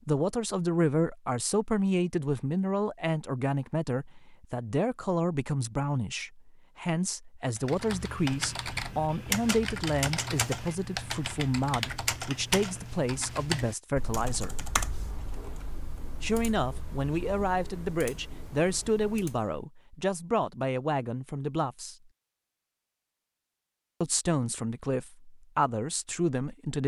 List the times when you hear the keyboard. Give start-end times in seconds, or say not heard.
7.5-19.6.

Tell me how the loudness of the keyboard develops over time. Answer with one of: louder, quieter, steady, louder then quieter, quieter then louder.
quieter.